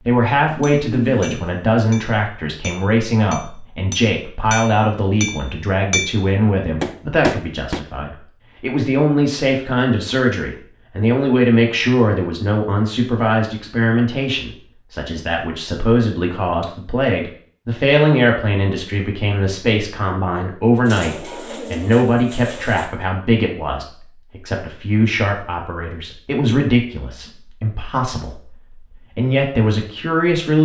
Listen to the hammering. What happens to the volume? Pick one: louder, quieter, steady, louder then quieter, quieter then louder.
louder.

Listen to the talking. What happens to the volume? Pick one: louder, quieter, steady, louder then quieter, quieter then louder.
steady.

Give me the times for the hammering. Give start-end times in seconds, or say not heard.
0.6-7.8.